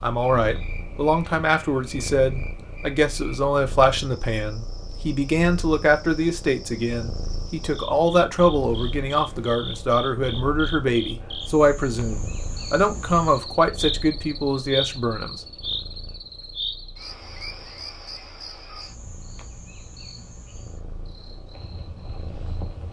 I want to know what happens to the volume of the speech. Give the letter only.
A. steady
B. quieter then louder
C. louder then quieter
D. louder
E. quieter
A.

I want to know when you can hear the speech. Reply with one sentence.
You can hear the speech from 0.0 to 15.4 s.